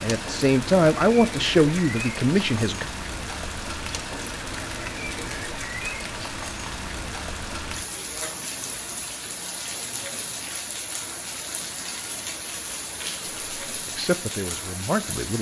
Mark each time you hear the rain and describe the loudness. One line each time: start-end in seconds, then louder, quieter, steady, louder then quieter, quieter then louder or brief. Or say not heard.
0.0-15.3 steady.